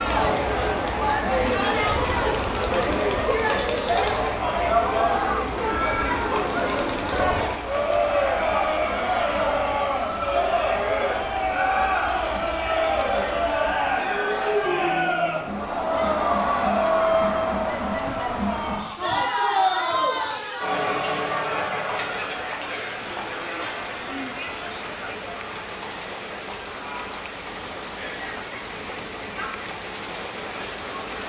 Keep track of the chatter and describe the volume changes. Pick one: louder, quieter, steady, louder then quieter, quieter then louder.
quieter.